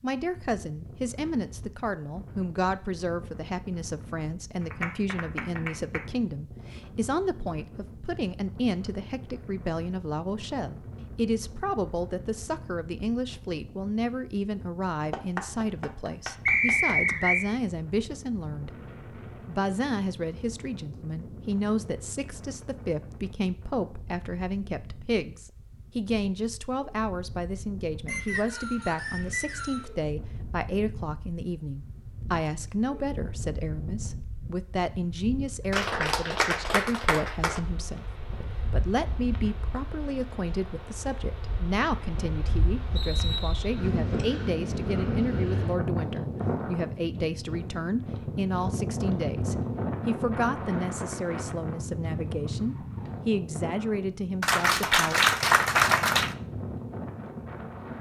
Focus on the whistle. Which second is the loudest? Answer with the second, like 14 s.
17 s.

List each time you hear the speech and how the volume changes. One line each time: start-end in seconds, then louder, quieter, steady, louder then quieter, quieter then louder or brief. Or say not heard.
0.0-18.7 steady
19.4-55.2 steady.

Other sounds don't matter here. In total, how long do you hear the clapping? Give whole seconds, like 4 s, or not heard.
7 s.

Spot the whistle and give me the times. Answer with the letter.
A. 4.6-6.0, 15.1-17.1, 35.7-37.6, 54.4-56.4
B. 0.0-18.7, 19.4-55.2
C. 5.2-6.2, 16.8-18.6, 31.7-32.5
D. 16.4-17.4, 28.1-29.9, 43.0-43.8
D.